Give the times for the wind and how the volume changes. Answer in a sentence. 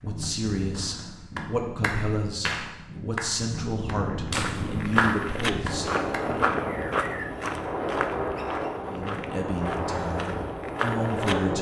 The wind can be heard from 0.0 to 11.5 s, getting louder.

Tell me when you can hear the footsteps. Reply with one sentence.
The footsteps can be heard from 4.3 to 11.3 s.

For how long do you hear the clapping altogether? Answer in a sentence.
You can hear the clapping for 5 seconds altogether.